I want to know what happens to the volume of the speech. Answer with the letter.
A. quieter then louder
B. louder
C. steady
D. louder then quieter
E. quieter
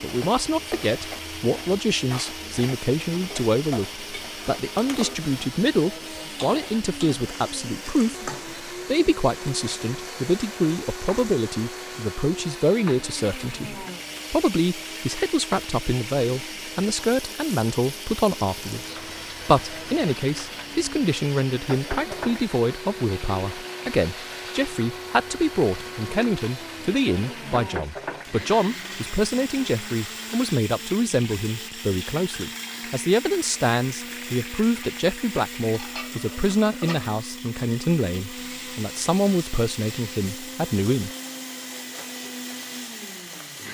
C.